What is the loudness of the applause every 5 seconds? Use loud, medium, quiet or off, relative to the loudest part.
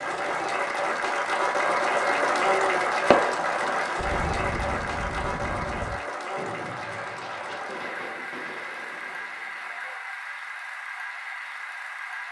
loud, medium, medium.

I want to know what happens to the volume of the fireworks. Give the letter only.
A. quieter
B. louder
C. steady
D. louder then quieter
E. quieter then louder
A.